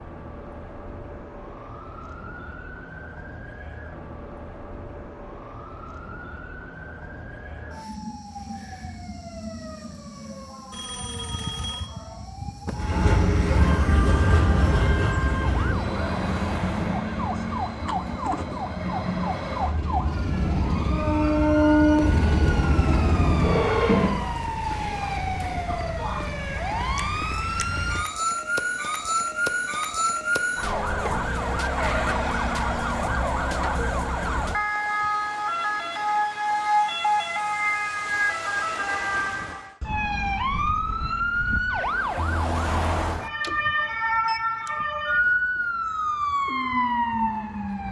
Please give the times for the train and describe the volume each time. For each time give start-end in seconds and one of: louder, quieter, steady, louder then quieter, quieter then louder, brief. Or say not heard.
12.8-24.1 quieter then louder.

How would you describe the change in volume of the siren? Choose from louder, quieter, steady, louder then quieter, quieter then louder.
louder.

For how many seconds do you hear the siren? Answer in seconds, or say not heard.
48 s.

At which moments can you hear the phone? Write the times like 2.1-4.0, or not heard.
10.7-11.9.